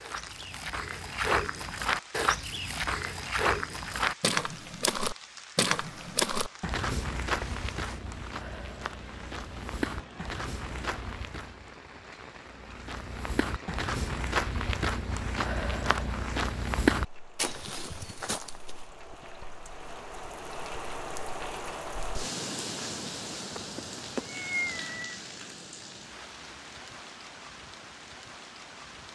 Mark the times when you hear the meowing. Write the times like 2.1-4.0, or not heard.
23.6-25.2.